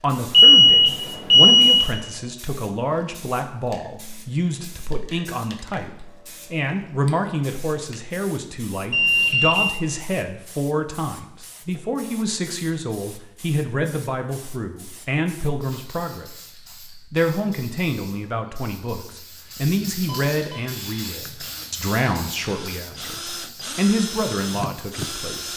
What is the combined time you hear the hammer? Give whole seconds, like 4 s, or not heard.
not heard.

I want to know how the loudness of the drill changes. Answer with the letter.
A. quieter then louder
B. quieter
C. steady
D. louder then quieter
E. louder
E.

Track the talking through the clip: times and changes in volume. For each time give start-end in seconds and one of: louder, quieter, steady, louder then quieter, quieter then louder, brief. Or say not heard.
0.0-25.5 steady.